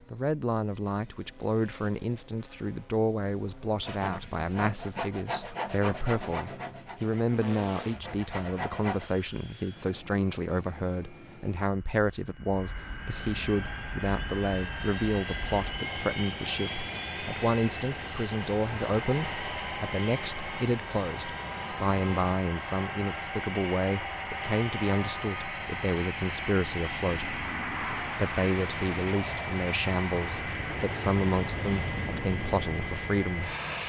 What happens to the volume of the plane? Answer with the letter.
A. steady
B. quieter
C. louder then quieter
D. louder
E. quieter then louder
D.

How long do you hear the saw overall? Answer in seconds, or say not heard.
5 s.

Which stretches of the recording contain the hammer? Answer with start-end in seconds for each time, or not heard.
not heard.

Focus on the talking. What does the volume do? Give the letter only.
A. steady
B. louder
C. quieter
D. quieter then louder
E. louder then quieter
A.